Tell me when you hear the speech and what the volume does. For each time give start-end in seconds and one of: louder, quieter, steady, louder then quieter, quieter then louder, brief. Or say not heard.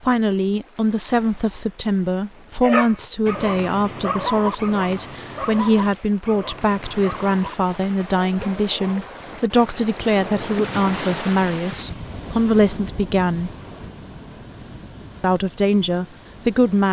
0.0-13.5 steady
15.2-16.8 brief.